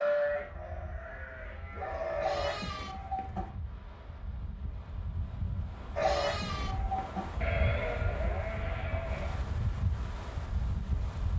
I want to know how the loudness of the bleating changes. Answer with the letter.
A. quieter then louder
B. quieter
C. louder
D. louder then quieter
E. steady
B.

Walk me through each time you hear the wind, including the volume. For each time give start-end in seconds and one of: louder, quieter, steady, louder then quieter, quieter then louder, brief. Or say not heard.
0.0-11.3 louder.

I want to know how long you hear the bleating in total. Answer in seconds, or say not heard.
7 s.